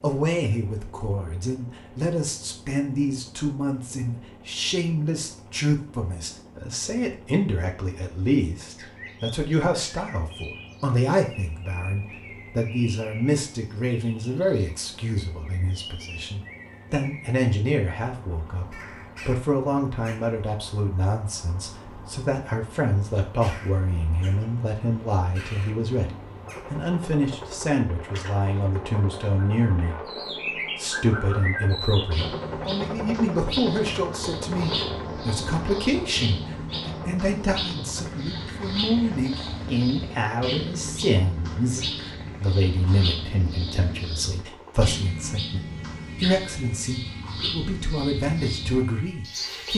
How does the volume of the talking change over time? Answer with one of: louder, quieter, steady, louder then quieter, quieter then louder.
steady.